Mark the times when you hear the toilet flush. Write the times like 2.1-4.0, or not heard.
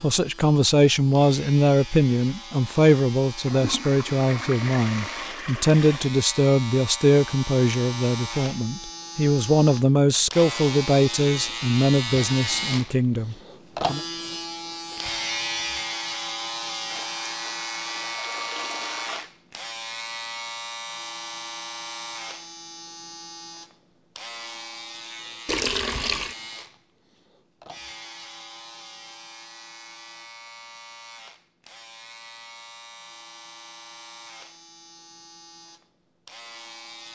3.4-6.1, 16.9-19.3, 25.4-26.4.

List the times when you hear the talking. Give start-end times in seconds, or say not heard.
0.0-14.0.